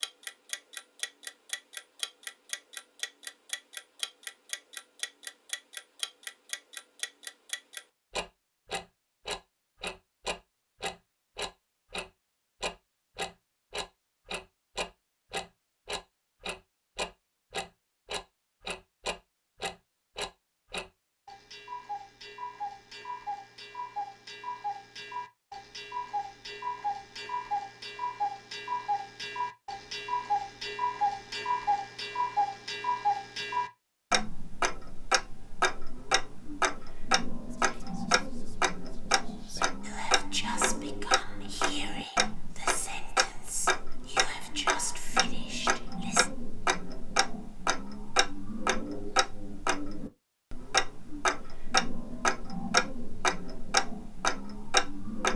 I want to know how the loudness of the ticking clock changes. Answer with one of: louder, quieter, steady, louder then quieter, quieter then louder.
louder.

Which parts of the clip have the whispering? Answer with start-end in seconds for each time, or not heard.
37.5-46.3.